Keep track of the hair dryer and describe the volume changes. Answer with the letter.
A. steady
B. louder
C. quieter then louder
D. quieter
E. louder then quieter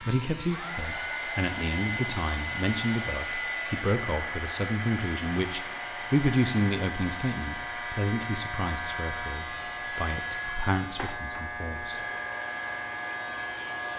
D.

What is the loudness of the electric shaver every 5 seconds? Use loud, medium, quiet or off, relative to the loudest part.
medium, loud, loud.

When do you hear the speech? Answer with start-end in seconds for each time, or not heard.
0.0-12.0.